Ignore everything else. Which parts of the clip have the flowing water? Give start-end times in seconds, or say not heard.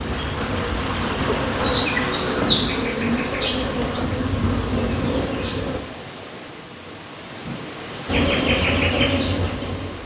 0.0-10.0.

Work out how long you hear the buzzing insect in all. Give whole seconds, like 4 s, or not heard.
8 s.